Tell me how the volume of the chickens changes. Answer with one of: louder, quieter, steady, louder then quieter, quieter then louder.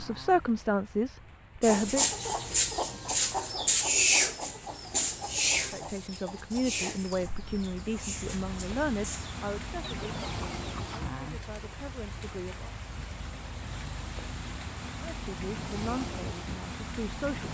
quieter.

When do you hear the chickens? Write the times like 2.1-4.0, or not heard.
1.6-11.0.